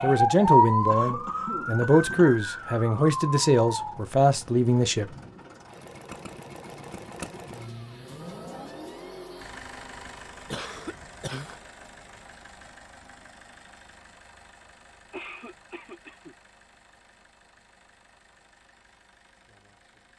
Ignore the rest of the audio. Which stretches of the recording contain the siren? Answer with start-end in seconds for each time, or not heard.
0.0-4.0.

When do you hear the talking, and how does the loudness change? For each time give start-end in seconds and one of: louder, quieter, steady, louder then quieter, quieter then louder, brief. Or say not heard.
0.0-5.1 steady.